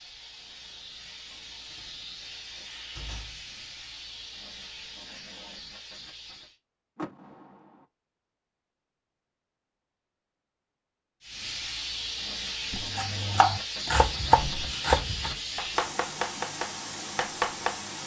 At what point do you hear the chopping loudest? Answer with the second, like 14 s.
14 s.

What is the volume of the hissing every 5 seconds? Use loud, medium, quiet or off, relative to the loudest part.
medium, medium, loud, loud.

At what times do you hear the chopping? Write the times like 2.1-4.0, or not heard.
12.8-17.8.